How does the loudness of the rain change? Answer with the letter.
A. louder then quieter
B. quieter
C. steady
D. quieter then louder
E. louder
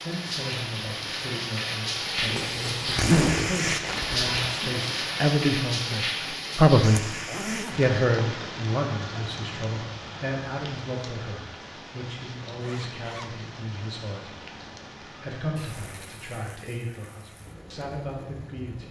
B.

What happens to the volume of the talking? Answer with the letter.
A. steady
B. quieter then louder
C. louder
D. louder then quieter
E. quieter
D.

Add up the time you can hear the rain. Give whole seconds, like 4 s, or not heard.
19 s.